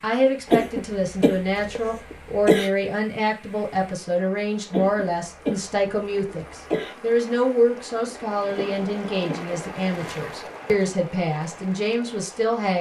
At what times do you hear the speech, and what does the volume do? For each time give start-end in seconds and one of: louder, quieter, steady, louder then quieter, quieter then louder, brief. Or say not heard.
0.0-12.7 steady.